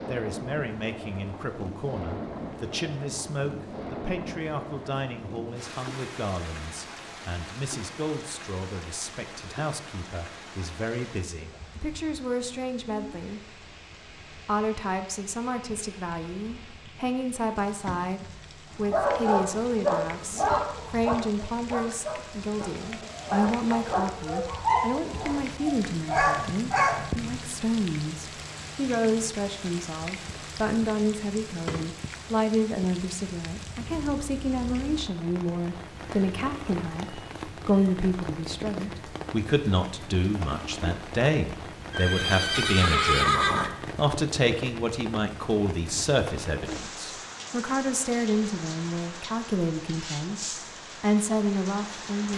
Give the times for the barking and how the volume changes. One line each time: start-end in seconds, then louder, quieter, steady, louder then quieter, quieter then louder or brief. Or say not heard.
18.8-27.4 quieter then louder.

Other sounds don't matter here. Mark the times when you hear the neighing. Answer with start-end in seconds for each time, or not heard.
41.9-43.8.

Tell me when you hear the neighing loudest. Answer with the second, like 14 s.
43 s.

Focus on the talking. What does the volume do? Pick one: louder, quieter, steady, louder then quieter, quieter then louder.
louder.